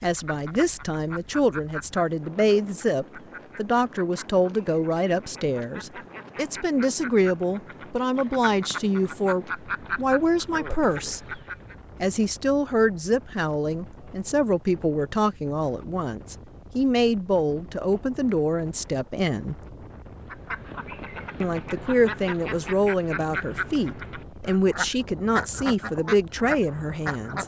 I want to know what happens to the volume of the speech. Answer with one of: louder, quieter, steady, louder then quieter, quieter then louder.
steady.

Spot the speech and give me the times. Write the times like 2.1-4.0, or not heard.
0.0-11.4, 12.0-19.6, 21.4-27.4.